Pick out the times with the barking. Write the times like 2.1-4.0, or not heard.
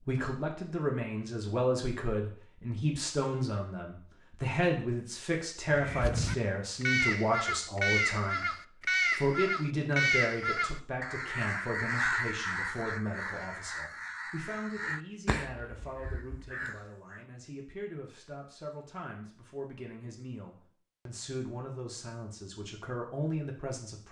not heard.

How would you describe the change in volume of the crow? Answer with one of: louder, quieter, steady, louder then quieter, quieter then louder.
quieter.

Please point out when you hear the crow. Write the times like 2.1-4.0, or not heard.
5.7-17.2.